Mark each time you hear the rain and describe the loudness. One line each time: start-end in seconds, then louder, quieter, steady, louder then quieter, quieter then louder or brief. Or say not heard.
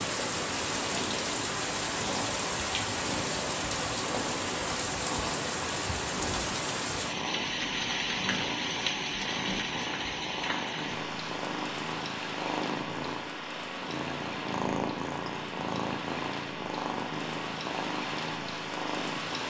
0.0-19.4 quieter.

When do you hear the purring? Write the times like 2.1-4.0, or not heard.
0.1-19.4.